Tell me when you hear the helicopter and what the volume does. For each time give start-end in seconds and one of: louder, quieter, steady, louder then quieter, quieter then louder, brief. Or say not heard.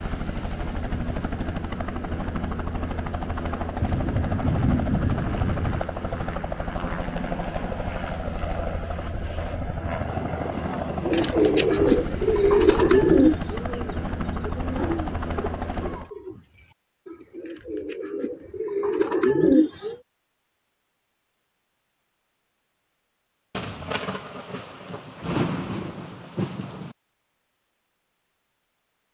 0.0-16.1 steady.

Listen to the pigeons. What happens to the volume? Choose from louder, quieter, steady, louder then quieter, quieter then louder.
quieter then louder.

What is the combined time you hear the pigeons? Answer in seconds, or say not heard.
9 s.